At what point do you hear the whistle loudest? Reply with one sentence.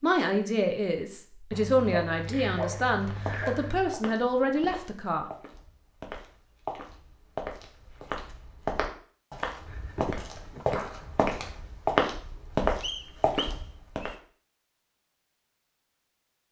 The loudest moment of the whistle is at 13 seconds.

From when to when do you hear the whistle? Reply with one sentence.
You can hear the whistle from 12.8 to 14.2 s.